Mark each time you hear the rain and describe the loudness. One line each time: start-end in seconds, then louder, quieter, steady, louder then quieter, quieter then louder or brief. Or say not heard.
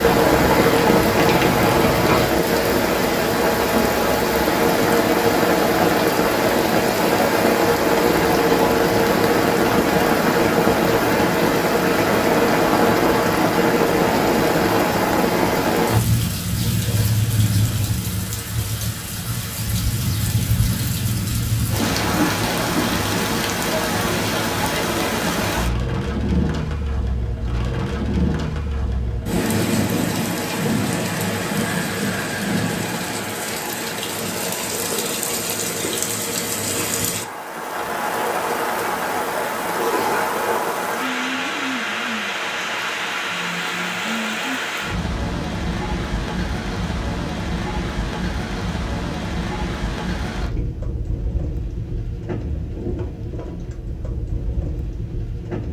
0.0-55.6 quieter.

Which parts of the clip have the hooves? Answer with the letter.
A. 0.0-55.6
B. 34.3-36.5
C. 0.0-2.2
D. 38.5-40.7
C.